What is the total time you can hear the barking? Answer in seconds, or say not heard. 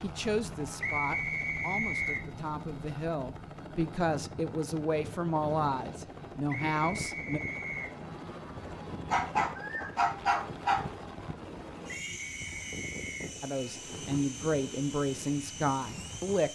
2 s.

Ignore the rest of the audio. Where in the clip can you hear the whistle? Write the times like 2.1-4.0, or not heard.
0.8-2.2, 6.5-8.0, 12.0-13.3.